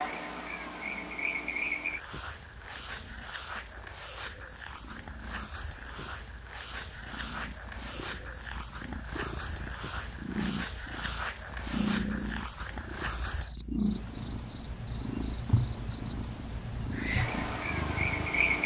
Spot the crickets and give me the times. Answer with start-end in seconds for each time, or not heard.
0.0-18.6.